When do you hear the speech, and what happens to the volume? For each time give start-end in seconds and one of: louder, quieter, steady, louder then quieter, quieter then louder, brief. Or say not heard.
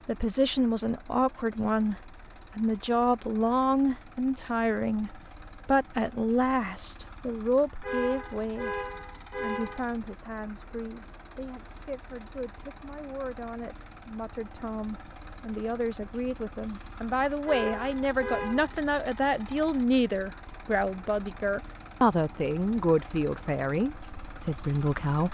0.1-25.2 quieter then louder.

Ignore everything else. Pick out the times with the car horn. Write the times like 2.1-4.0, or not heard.
7.8-9.8, 17.4-18.7.